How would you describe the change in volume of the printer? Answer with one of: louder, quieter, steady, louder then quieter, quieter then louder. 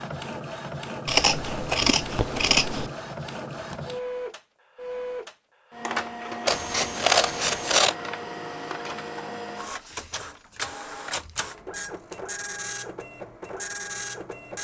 steady.